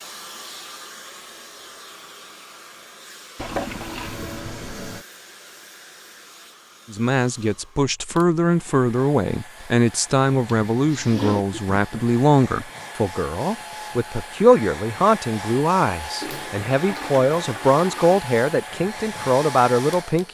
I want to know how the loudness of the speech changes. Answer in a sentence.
The volume of the speech stays about the same.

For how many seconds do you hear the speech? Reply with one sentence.
The speech can be heard for 13 seconds in total.